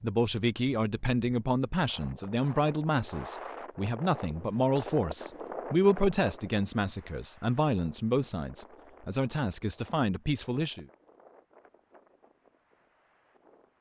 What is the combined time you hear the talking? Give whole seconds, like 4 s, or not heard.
11 s.